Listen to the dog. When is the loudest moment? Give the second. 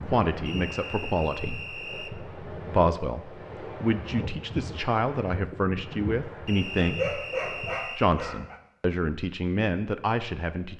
7 s.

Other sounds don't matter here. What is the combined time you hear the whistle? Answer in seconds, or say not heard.
3 s.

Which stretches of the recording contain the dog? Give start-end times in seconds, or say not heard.
6.8-8.6.